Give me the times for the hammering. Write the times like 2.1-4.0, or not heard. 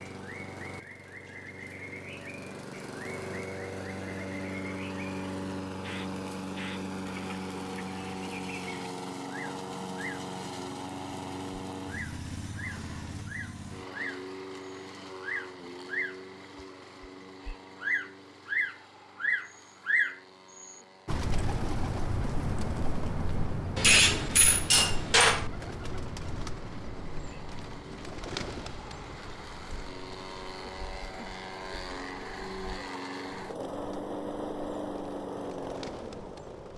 23.8-25.5.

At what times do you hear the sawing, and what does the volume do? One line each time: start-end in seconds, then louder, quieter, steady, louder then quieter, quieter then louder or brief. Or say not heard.
not heard.